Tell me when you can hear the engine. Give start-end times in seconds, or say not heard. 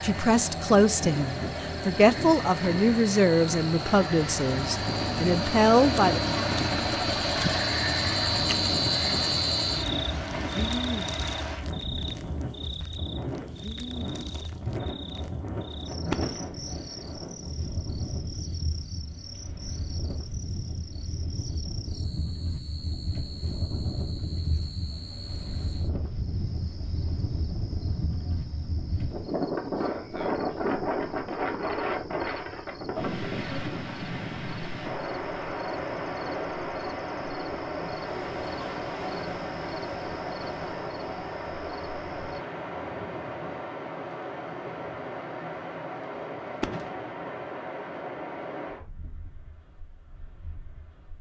0.0-11.7.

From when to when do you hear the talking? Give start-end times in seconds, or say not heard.
0.0-6.5.